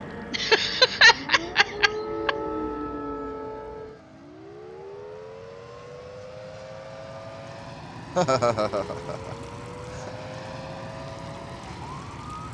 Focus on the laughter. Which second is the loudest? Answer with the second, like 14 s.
1 s.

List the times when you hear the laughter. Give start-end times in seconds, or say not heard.
0.3-2.4, 8.2-10.1.